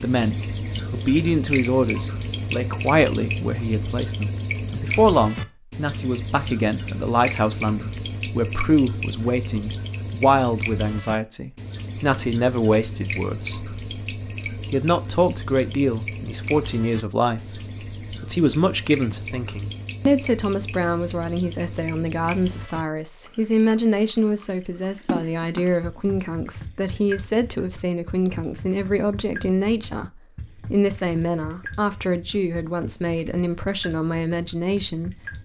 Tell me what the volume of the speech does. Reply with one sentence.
The loudness of the speech stays about the same.